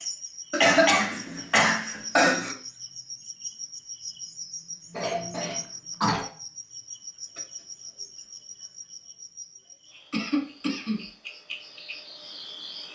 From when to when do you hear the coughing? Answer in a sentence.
The coughing can be heard from 0.5 to 2.5 s, from 4.9 to 6.2 s and from 10.1 to 11.0 s.